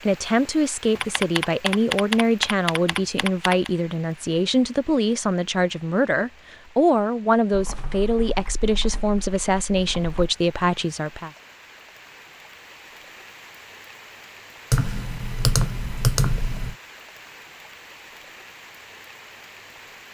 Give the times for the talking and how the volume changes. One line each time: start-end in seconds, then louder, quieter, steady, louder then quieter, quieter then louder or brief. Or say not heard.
0.0-11.3 steady.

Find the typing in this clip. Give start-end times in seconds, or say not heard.
1.0-3.7, 7.5-10.3, 14.7-16.7.